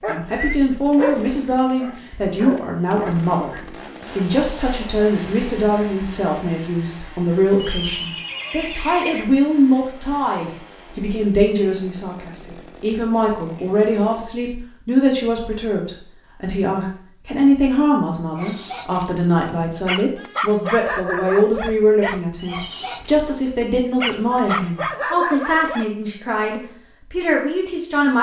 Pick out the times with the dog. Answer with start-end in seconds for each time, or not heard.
0.0-3.2, 18.4-25.9.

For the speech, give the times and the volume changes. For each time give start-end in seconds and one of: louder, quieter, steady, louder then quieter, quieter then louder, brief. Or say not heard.
0.1-28.1 steady.